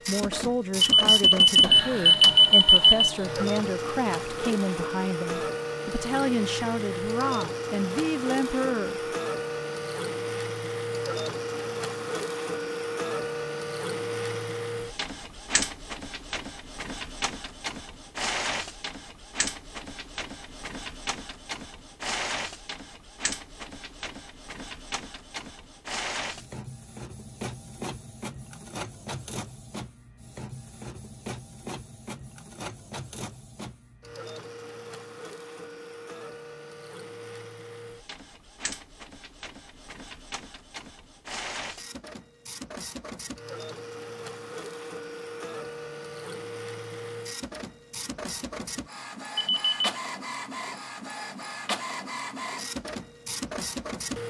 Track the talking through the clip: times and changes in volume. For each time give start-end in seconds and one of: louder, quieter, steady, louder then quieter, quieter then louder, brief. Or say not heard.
0.1-9.0 steady.